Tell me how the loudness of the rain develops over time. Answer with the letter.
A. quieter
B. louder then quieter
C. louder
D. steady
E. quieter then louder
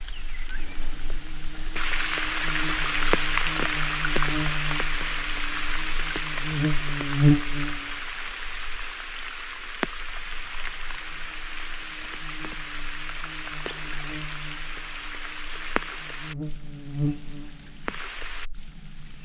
A.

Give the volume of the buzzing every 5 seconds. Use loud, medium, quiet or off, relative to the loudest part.
medium, loud, quiet, medium.